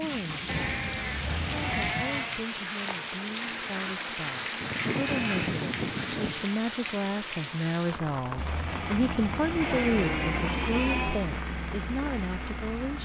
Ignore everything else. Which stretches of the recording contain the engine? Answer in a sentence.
You can hear the engine from 0.0 to 1.9 s and from 8.3 to 13.0 s.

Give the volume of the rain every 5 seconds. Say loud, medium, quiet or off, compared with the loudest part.
loud, loud, medium.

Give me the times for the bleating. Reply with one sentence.
You can hear the bleating from 0.5 to 2.5 s, from 4.6 to 6.5 s and from 9.6 to 11.3 s.